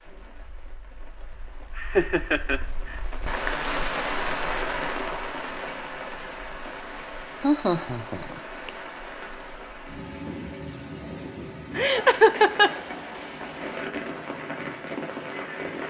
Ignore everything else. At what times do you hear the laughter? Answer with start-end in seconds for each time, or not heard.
1.8-3.0, 7.4-8.7, 11.8-12.7.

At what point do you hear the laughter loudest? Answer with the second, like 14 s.
12 s.